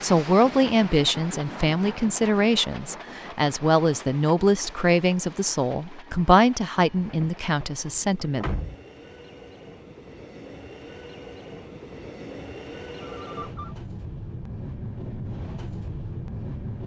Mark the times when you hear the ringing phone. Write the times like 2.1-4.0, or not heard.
13.0-13.8.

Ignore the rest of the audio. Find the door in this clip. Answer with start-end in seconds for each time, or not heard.
6.9-8.8.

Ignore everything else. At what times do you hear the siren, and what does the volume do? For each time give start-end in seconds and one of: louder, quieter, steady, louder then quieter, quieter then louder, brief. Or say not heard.
not heard.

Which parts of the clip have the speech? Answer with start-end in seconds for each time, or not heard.
0.0-8.4.